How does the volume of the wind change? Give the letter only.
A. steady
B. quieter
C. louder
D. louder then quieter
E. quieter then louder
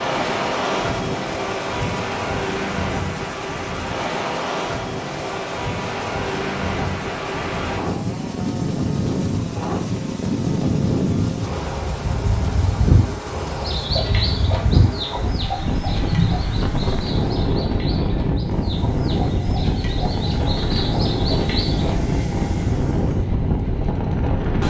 A.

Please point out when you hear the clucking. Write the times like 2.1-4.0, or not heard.
13.6-21.9.